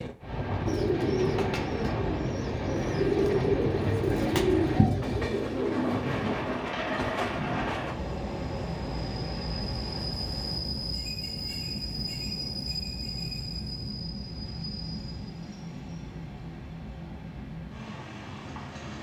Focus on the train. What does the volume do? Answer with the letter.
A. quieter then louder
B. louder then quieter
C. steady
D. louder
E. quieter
E.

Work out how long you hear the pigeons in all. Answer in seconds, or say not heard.
7 s.